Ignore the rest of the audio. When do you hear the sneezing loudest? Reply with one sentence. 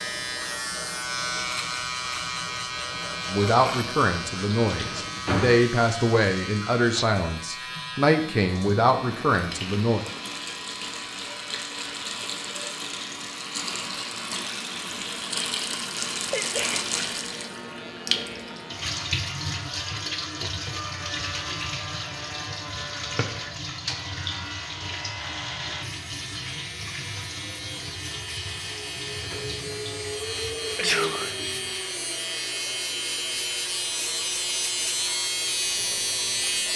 The loudest moment of the sneezing is at 31 seconds.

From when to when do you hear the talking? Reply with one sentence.
You can hear the talking from 3.3 to 10.1 s.